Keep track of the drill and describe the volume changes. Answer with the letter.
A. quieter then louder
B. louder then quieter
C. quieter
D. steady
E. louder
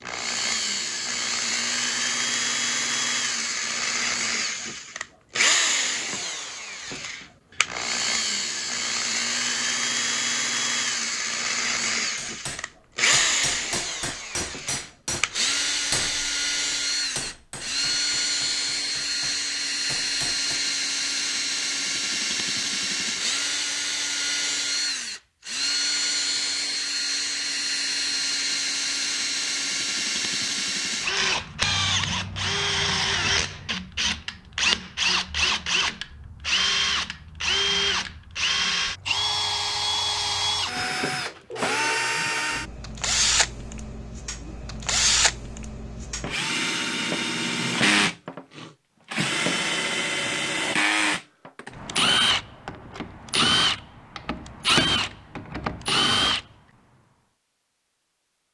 D.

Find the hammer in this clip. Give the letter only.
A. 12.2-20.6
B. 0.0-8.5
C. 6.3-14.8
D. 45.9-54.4
A.